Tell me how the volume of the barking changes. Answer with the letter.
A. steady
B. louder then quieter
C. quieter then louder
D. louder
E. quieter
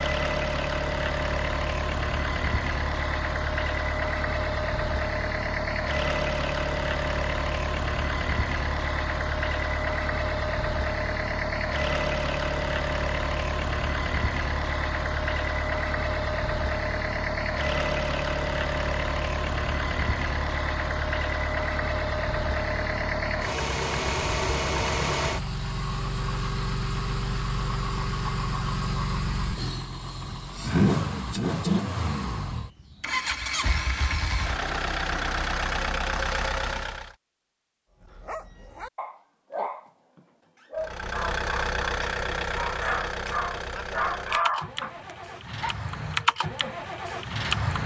D.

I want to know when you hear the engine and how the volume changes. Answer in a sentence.
You can hear the engine from 0.0 to 37.1 s, at a steady volume; and from 40.8 to 47.8 s, getting quieter then louder.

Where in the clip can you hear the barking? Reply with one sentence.
You can hear the barking from 38.0 to 45.8 s.